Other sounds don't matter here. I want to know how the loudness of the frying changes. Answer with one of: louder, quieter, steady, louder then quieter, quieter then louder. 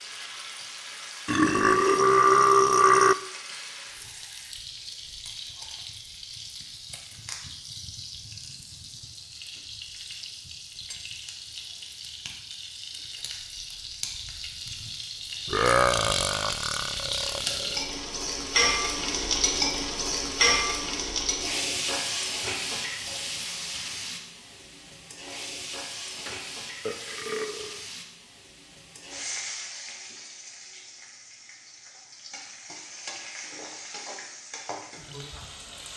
louder then quieter.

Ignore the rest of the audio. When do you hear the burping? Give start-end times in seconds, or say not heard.
1.2-3.1, 15.4-17.8, 26.1-27.9.